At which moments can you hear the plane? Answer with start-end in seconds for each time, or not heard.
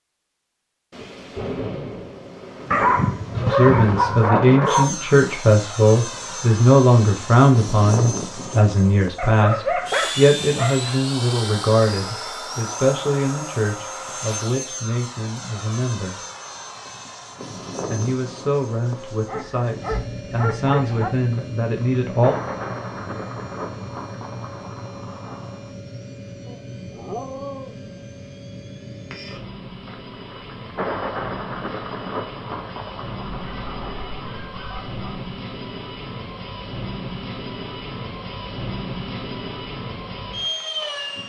4.7-41.2.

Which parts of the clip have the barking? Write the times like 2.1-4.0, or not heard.
2.7-4.9, 9.2-11.0, 19.2-21.1, 26.4-27.9, 33.5-35.1.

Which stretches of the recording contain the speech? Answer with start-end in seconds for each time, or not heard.
3.4-16.2, 17.9-22.4.